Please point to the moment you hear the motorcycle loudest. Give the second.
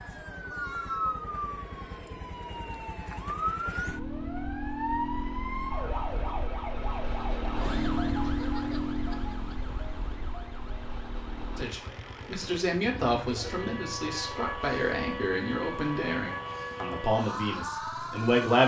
8 s.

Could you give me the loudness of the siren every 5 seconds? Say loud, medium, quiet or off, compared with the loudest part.
loud, loud, medium, loud.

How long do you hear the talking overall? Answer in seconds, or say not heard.
7 s.